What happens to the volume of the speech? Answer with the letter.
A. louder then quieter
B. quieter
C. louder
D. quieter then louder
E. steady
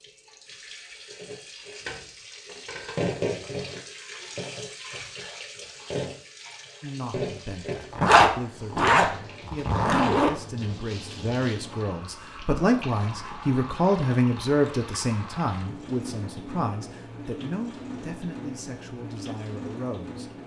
A.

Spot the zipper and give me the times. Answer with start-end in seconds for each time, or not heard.
8.0-10.3.